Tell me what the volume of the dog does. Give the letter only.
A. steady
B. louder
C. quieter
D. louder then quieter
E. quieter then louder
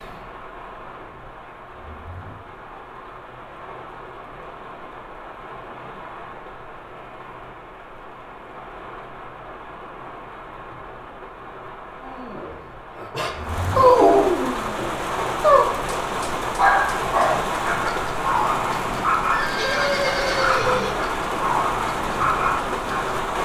C.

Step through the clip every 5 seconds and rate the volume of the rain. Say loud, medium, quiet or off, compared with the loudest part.
quiet, quiet, medium, loud, loud.